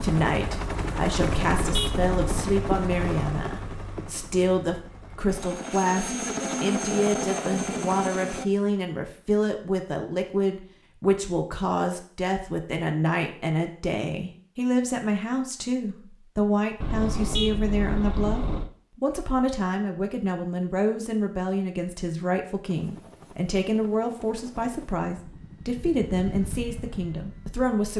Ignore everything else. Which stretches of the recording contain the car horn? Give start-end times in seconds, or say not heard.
1.2-2.6, 16.8-18.7.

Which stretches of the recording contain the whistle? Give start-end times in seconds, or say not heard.
not heard.